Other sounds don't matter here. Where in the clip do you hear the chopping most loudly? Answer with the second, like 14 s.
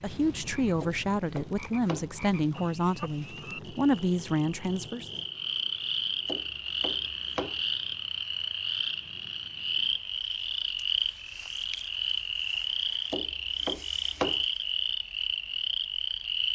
14 s.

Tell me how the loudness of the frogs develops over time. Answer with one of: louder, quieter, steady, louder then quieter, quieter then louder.
louder.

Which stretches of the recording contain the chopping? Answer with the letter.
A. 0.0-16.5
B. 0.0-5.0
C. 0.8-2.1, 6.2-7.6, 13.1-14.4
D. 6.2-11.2
C.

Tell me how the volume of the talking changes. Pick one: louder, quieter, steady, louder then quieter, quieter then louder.
quieter then louder.